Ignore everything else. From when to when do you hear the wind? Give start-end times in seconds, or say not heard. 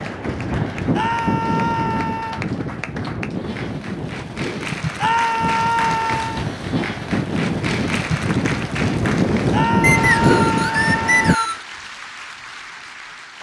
0.0-11.3.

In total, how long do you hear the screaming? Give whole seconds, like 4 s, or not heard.
5 s.